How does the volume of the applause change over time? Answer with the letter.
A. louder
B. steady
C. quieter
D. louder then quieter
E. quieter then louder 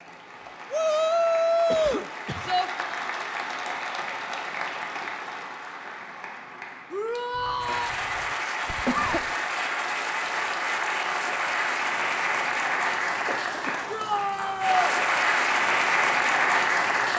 A.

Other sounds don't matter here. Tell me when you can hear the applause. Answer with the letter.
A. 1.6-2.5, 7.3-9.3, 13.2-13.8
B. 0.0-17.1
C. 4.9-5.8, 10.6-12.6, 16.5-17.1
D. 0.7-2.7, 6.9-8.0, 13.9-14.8
B.